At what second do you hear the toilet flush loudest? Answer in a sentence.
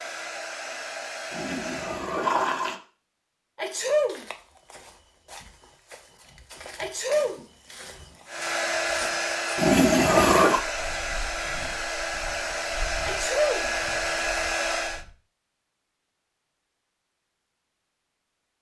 The loudest moment of the toilet flush is at 10 seconds.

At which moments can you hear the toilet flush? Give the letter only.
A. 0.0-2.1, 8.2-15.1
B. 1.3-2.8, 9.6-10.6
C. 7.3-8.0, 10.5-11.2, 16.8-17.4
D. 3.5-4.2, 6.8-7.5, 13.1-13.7
B.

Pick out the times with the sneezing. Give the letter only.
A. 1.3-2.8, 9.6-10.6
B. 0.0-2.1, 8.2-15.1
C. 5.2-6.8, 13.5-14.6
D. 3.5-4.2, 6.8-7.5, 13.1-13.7
D.